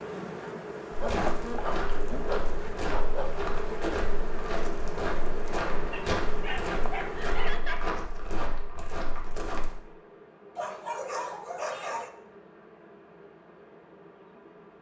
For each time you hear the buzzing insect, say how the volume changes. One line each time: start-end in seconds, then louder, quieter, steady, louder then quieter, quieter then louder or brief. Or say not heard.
0.0-14.7 quieter.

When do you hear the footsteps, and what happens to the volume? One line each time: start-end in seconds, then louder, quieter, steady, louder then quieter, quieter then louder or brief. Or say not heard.
0.9-9.8 steady.